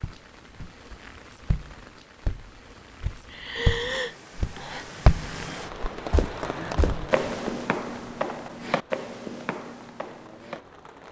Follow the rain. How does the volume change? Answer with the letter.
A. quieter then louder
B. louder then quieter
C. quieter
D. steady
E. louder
B.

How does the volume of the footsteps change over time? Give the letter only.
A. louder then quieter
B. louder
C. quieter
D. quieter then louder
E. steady
A.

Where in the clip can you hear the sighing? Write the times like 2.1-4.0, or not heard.
3.3-4.8.